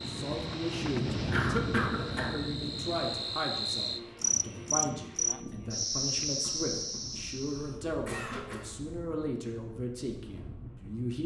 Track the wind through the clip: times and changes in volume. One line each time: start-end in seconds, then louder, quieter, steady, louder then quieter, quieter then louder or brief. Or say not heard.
0.0-11.2 quieter.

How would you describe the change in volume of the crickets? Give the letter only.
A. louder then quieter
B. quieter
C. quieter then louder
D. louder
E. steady
D.